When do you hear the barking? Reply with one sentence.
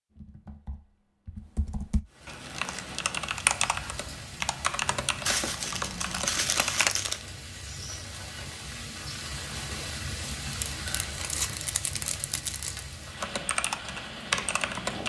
You can't hear the barking here.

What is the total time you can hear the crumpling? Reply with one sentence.
You can hear the crumpling for 5 seconds altogether.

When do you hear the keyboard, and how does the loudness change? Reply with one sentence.
You can hear the keyboard from 0.1 to 7.0 s, getting louder then quieter; and briefly from 13.2 to 15.0 s.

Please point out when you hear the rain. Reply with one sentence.
You can hear the rain from 2.0 to 15.0 s.